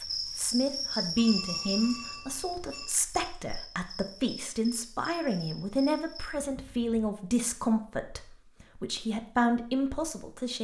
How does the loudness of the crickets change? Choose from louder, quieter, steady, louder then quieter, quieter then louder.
quieter.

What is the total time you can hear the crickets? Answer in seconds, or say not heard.
6 s.